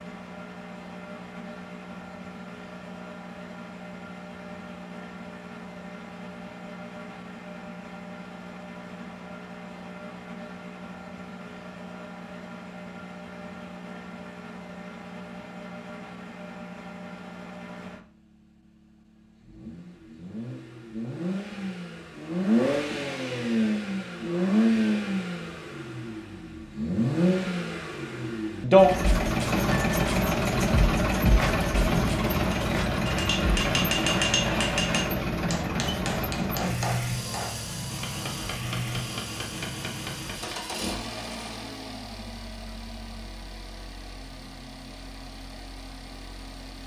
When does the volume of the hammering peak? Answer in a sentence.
The volume of the hammering peaks at 34 seconds.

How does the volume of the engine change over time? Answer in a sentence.
The loudness of the engine goes up, then down.